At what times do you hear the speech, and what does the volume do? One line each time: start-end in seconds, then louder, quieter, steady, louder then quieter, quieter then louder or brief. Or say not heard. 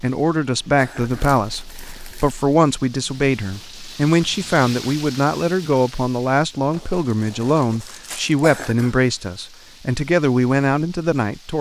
0.0-11.5 steady.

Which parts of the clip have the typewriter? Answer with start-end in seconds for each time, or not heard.
not heard.